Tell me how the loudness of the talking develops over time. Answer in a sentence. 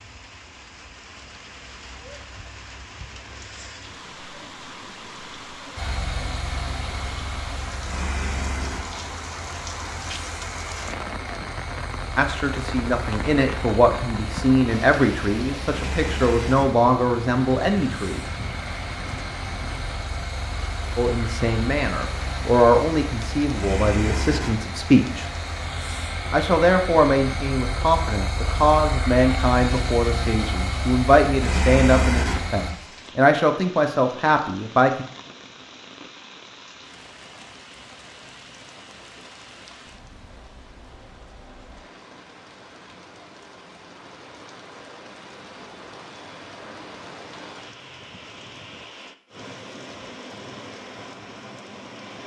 The loudness of the talking stays about the same.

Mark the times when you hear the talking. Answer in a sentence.
You can hear the talking from 12.2 to 18.2 s, from 20.9 to 25.2 s and from 26.3 to 35.0 s.